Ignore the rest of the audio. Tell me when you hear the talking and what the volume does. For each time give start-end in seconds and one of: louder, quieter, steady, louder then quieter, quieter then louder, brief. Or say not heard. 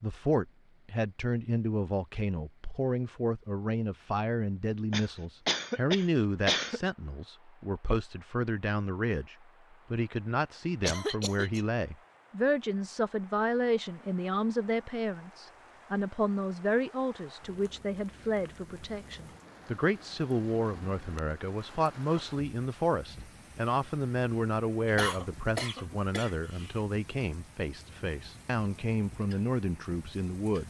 0.0-30.6 steady.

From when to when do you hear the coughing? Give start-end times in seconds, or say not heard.
4.9-6.8, 10.8-11.6, 24.9-26.8.